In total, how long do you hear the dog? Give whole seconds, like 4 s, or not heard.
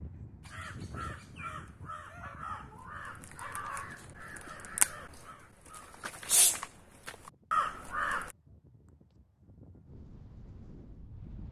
2 s.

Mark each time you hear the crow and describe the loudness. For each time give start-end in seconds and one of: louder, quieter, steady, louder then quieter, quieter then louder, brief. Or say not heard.
0.4-8.3 louder.